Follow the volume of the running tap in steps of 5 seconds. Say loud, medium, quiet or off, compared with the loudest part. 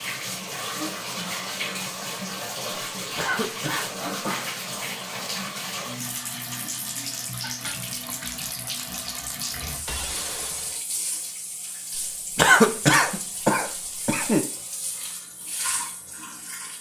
loud, loud, medium, medium.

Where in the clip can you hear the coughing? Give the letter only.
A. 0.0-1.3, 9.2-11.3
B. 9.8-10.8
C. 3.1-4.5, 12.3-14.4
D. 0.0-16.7
C.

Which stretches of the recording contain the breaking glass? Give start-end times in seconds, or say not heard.
9.8-10.8.